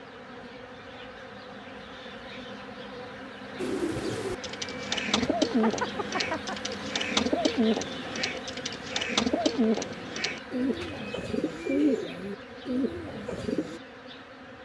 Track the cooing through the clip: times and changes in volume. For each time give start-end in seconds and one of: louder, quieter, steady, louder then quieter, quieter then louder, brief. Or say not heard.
3.5-13.8 steady.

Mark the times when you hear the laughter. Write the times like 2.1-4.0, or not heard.
5.2-6.5.